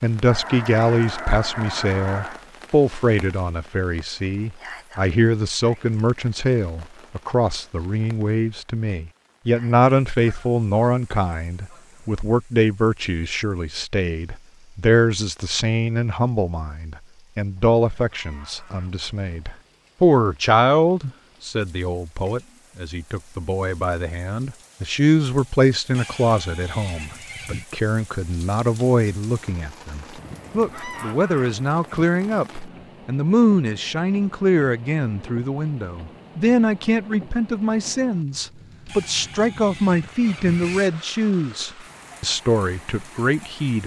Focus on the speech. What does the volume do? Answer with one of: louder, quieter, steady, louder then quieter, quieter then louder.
steady.